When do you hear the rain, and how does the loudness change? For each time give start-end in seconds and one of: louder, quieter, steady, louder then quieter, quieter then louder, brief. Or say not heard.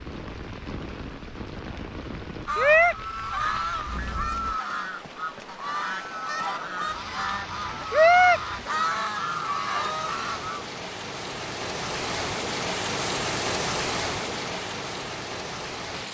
0.0-16.0 louder.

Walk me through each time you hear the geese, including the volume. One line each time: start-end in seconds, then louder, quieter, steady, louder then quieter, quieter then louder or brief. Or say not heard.
2.5-10.7 louder then quieter.